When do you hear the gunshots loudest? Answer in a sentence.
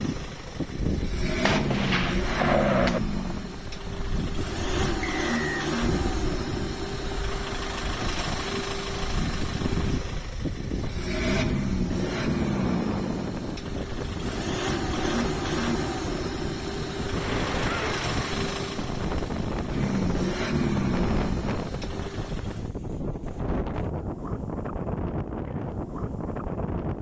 The loudest moment of the gunshots is at 3 seconds.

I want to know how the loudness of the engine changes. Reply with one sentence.
The loudness of the engine stays about the same.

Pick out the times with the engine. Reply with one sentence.
The engine can be heard from 0.0 to 22.7 s.